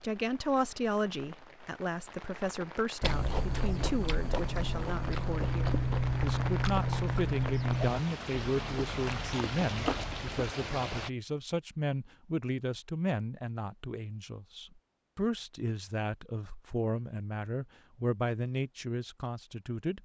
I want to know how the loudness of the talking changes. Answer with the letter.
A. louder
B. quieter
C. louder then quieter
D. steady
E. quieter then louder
D.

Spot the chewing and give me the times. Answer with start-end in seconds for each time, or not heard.
3.0-10.6.